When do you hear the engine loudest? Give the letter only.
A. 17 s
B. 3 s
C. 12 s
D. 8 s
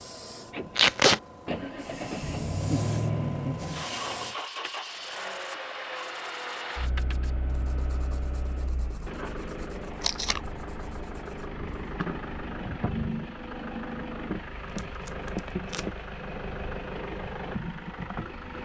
B.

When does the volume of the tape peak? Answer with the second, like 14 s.
1 s.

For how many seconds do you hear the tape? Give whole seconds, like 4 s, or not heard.
2 s.